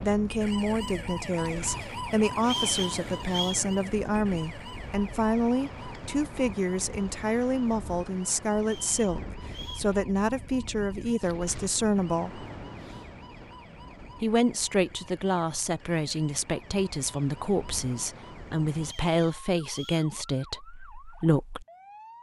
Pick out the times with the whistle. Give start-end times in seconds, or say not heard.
2.4-3.6, 8.6-9.9, 18.8-20.1.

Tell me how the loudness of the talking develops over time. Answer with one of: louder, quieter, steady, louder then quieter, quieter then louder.
steady.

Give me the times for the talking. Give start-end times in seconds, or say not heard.
0.0-12.4, 14.2-21.6.